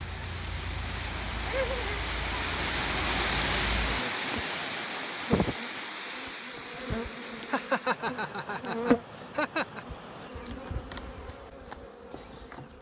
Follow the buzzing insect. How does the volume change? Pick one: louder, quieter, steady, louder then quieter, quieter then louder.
louder then quieter.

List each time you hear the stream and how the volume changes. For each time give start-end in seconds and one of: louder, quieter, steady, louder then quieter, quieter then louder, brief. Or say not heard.
0.0-10.3 louder then quieter.